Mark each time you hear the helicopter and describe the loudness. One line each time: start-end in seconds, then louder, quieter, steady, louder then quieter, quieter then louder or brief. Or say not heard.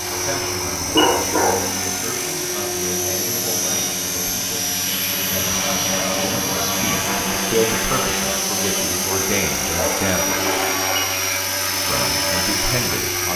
0.0-13.3 steady.